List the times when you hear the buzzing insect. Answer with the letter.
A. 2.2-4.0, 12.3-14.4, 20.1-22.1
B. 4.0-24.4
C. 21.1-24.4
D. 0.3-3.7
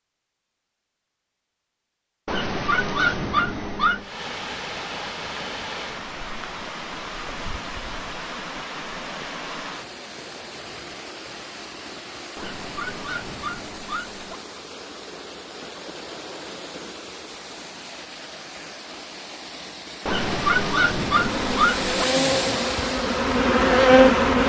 C.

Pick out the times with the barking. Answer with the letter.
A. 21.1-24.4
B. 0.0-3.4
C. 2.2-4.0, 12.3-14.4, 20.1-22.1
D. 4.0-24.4
C.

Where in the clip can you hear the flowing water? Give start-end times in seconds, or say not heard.
4.0-24.4.